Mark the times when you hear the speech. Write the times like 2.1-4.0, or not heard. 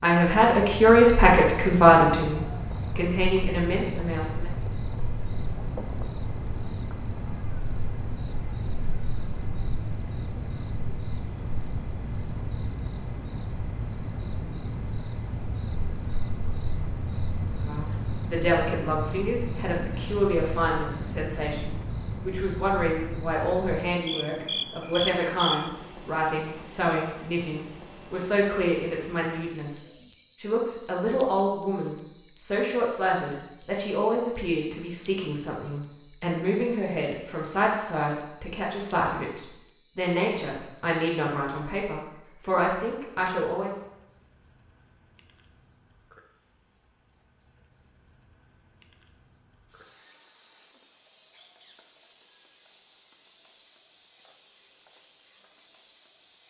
0.0-4.5, 17.6-43.8.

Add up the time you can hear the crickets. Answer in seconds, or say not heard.
56 s.